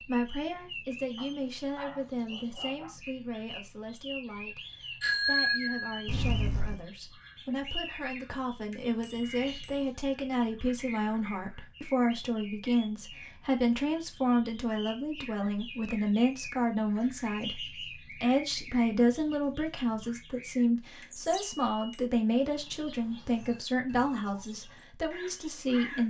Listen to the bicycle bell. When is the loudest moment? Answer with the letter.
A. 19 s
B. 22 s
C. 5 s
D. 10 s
C.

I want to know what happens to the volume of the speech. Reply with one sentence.
The loudness of the speech goes up.